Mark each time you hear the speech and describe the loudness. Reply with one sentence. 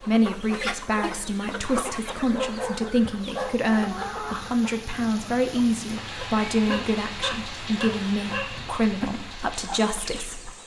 You can hear the speech from 0.0 to 10.6 s, at a steady volume.